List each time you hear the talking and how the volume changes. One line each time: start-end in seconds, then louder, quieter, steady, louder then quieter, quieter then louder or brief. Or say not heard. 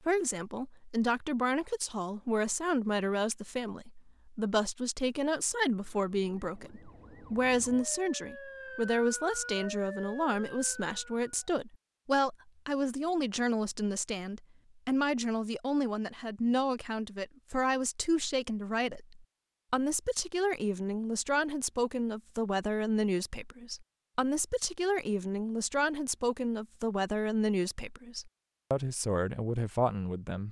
0.1-30.4 steady.